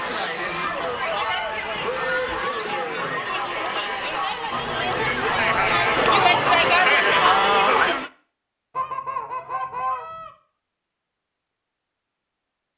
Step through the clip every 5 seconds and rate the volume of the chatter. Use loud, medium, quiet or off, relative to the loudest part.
medium, loud, off.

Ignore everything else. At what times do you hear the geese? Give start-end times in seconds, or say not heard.
0.3-2.5, 4.5-6.8, 8.8-10.3.